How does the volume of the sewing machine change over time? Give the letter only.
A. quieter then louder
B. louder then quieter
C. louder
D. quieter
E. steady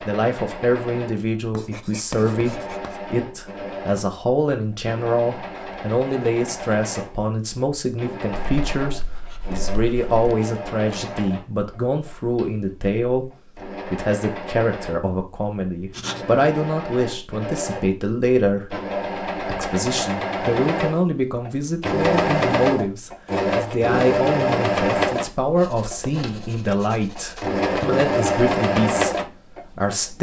C.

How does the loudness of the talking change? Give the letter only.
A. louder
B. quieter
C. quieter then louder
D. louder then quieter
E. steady
E.